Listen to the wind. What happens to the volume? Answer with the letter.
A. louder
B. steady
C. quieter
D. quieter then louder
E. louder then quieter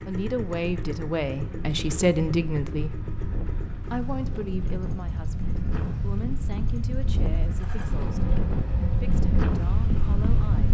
A.